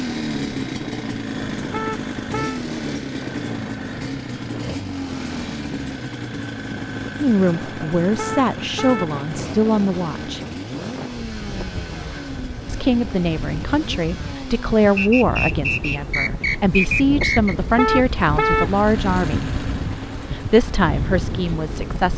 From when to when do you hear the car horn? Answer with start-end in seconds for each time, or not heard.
1.7-2.6, 8.2-9.2, 17.8-18.8.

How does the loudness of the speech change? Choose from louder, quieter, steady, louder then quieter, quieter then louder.
steady.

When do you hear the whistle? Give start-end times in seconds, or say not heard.
14.9-17.6.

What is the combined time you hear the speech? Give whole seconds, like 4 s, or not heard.
13 s.